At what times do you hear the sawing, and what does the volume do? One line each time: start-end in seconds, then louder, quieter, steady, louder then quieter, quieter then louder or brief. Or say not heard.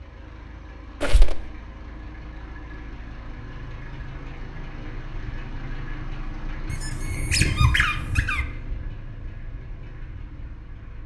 not heard.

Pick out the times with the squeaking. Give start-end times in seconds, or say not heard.
1.0-1.5, 6.7-8.4.